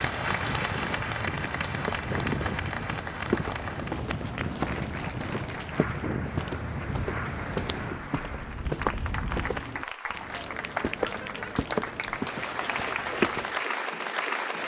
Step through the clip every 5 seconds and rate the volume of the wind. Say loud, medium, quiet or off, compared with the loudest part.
loud, loud, off.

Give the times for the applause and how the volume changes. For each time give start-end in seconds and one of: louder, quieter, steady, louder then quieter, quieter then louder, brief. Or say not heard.
0.0-14.6 quieter then louder.